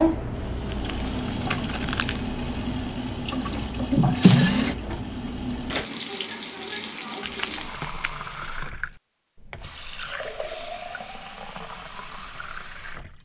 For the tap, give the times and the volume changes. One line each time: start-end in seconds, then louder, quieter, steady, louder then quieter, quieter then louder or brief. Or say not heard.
0.0-13.2 quieter.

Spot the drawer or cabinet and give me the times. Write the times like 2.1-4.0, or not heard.
3.9-4.8.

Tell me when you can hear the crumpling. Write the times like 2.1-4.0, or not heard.
0.7-2.3, 7.2-8.1.